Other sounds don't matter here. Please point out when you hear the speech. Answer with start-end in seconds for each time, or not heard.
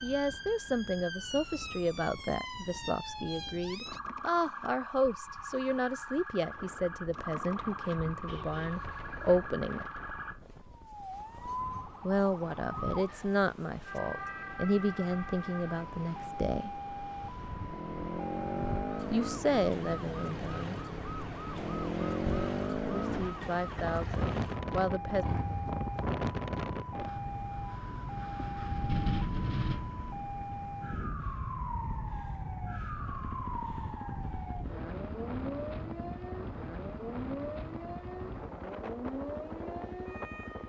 0.0-9.8, 12.0-16.8, 19.1-20.8, 22.9-25.2.